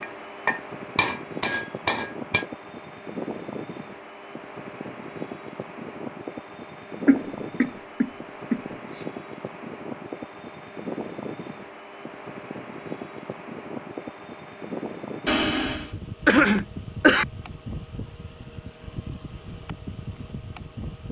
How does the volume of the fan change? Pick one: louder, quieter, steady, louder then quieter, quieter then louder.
steady.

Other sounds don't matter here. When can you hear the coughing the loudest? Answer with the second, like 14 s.
16 s.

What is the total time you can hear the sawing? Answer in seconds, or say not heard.
not heard.